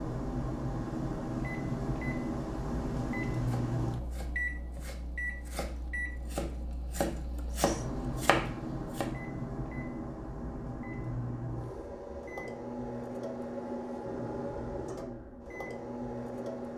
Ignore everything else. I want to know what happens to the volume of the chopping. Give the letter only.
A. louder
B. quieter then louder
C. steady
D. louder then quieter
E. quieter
A.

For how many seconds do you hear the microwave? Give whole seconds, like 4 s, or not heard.
17 s.